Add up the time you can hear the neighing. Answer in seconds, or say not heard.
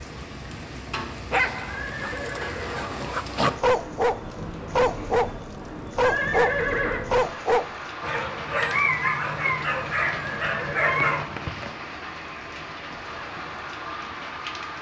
3 s.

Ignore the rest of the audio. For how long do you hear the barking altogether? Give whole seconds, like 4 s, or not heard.
9 s.